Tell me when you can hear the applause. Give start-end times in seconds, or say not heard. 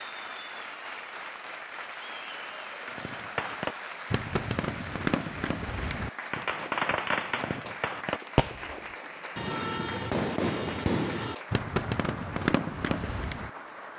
0.0-13.9.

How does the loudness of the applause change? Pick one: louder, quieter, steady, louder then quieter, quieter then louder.
steady.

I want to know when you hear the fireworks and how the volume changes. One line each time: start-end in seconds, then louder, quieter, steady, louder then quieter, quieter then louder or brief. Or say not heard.
2.9-13.5 steady.